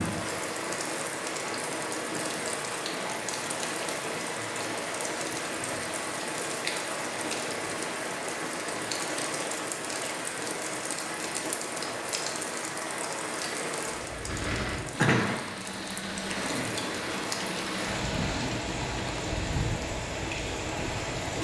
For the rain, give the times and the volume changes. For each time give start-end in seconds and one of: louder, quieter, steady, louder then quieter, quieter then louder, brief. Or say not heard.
0.0-21.3 steady.